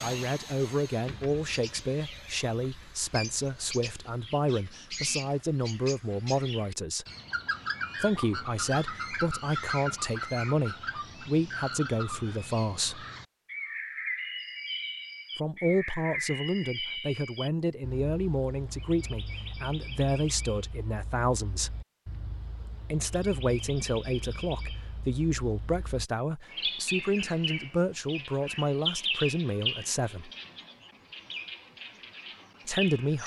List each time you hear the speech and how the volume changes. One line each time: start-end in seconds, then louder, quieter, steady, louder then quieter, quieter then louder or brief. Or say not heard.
0.0-7.0 steady
8.0-13.1 steady
15.3-21.8 steady
22.9-30.3 steady
32.6-33.2 brief.